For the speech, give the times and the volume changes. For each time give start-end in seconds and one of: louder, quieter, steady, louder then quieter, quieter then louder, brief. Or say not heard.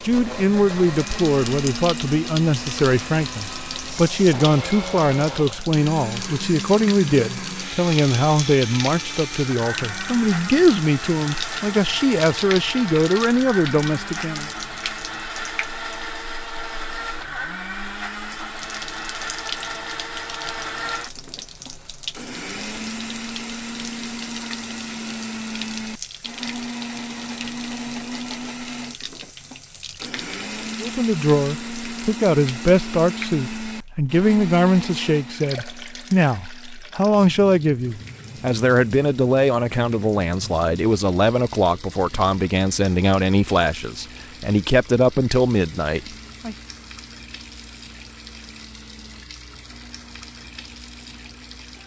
0.0-14.5 steady
30.8-46.5 steady.